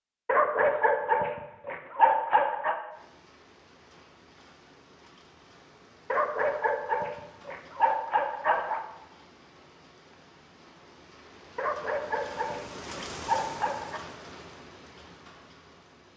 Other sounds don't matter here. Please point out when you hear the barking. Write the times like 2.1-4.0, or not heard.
0.2-2.8, 6.1-8.8, 11.6-14.0.